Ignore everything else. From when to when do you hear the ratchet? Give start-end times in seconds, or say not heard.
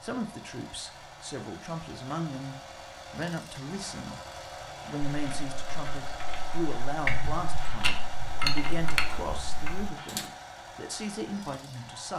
5.1-10.2.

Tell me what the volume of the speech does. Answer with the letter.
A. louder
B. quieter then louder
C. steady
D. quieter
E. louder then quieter
C.